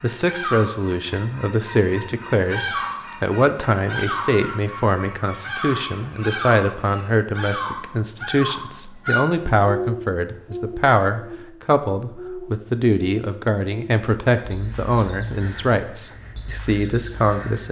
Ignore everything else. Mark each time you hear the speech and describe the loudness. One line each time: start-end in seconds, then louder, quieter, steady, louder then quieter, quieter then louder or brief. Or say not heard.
0.0-17.6 steady.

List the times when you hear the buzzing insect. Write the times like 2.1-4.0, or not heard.
not heard.